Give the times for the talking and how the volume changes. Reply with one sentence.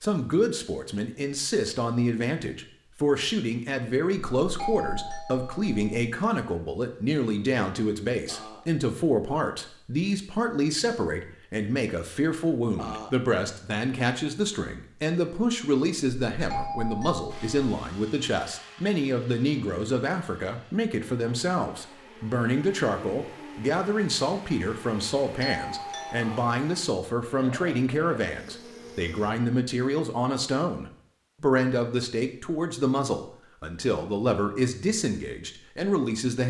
The talking can be heard from 0.0 to 36.4 s, at a steady volume.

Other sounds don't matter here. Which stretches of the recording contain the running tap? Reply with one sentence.
You can't hear the running tap here.